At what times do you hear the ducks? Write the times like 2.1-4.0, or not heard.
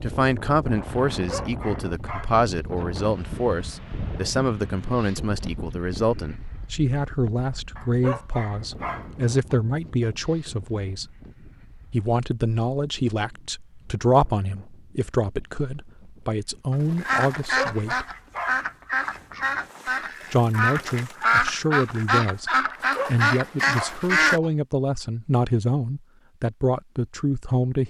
16.7-24.4.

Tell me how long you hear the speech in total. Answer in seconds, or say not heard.
25 s.